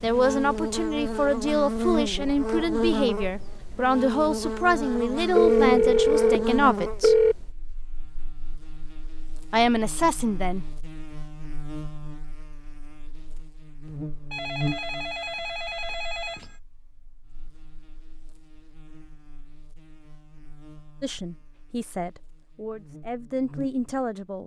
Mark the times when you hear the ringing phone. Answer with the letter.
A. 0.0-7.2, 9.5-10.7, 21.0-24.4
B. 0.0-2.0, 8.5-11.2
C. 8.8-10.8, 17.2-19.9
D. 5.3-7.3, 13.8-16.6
D.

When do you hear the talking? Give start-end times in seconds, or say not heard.
0.0-7.2, 9.5-10.7, 21.0-24.4.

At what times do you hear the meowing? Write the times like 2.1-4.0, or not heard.
not heard.